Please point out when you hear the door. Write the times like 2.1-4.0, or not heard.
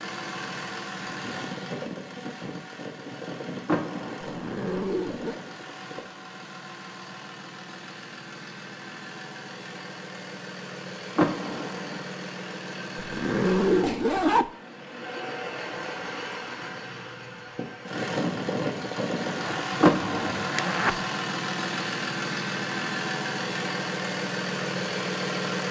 3.6-4.5, 11.2-12.1, 19.8-20.7.